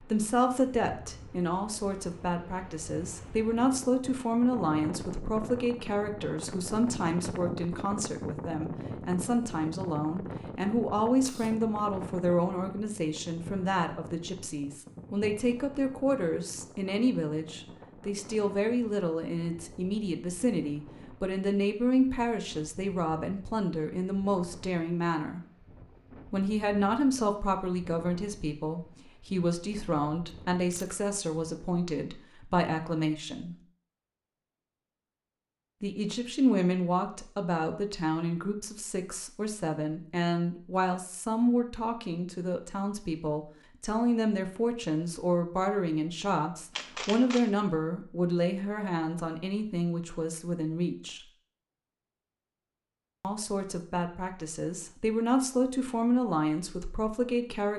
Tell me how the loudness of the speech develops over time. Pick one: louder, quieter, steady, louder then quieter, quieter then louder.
steady.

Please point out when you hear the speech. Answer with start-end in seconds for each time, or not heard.
0.0-25.4, 26.3-33.5, 35.8-51.2, 53.2-57.7.